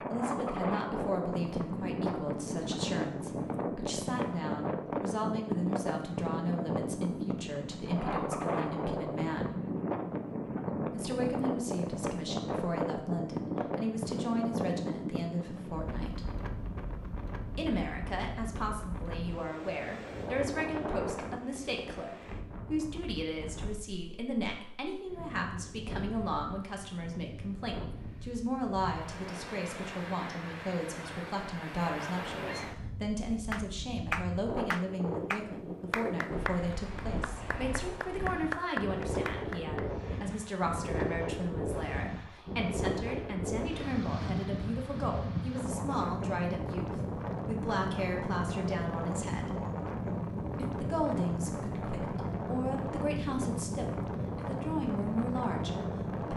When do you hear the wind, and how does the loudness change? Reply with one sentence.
The wind can be heard from 0.0 to 56.3 s, getting quieter then louder.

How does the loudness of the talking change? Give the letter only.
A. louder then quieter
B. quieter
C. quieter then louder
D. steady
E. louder
D.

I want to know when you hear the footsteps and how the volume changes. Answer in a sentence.
You can't hear the footsteps here.